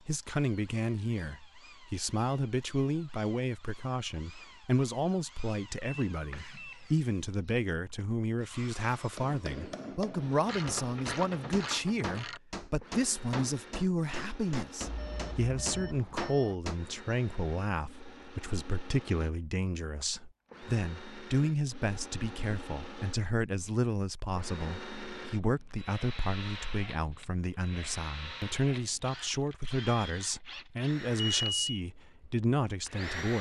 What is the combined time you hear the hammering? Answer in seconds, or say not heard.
8 s.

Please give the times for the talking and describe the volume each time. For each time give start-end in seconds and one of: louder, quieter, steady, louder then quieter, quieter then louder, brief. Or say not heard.
0.1-33.3 steady.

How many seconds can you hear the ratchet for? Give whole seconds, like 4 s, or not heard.
2 s.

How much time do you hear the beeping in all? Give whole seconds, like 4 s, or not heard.
4 s.